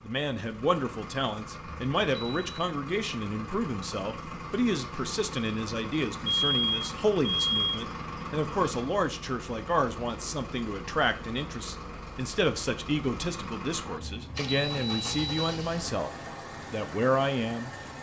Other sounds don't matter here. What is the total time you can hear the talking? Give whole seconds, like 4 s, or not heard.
17 s.